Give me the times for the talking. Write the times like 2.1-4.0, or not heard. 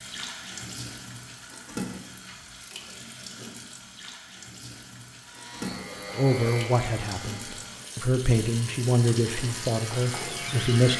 6.2-10.9.